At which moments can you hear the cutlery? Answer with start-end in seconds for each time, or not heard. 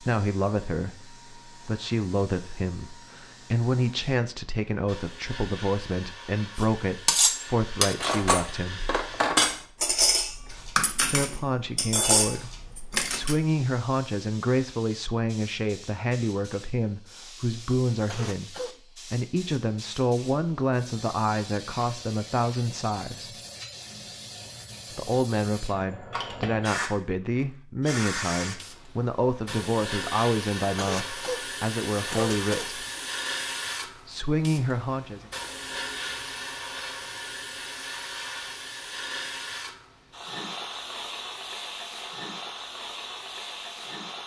6.5-13.3.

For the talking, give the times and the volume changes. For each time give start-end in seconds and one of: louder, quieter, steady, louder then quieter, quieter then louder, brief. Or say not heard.
0.0-8.8 steady
11.1-23.3 steady
24.9-32.9 steady
34.0-35.2 brief.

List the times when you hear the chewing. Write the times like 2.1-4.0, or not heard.
not heard.